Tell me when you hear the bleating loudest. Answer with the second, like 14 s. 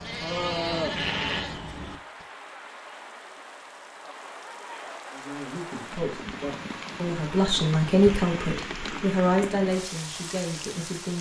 1 s.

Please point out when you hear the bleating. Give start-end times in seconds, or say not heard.
0.0-2.2.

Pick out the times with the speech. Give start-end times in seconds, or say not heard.
5.1-11.1.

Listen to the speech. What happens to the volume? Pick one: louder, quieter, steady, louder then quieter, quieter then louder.
louder then quieter.